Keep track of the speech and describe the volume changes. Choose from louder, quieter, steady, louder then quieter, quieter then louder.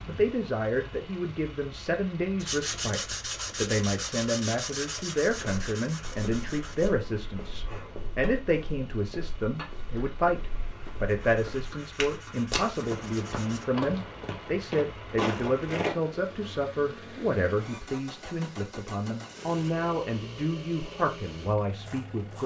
steady.